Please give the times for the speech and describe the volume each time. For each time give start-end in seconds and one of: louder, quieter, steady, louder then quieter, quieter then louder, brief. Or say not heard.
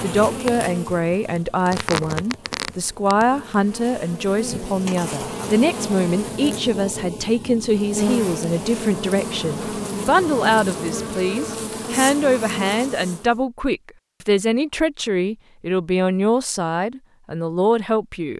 0.0-18.3 steady.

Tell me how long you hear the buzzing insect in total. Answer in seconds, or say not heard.
13 s.